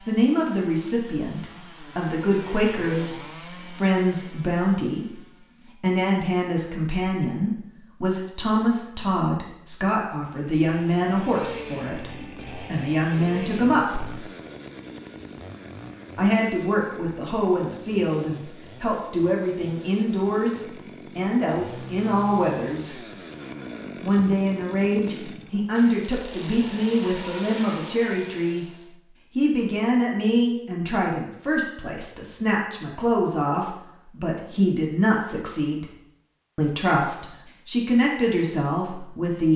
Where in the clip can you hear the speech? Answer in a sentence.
The speech can be heard from 0.1 to 14.1 s, from 16.1 to 23.0 s, from 24.0 to 28.6 s, from 29.4 to 35.9 s and from 36.5 to 39.5 s.